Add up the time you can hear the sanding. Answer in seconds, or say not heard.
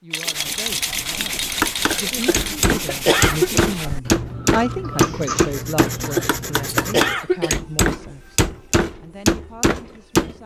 7 s.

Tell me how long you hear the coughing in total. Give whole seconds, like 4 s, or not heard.
3 s.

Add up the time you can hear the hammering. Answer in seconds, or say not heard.
9 s.